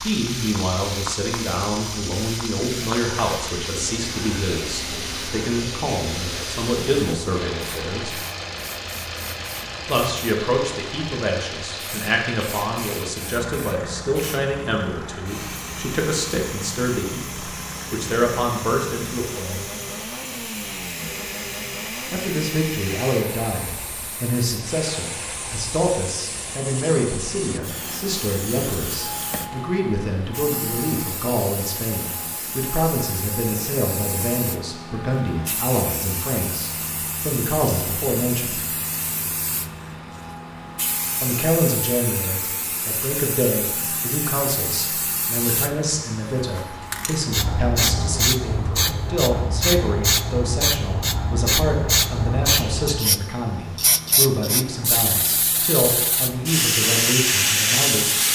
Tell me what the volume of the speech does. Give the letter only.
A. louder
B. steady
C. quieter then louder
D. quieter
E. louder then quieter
B.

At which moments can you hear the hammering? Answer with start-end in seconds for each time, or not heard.
not heard.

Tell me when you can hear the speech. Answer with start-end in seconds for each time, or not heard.
0.1-8.2, 9.8-19.7, 22.1-38.6, 41.2-58.1.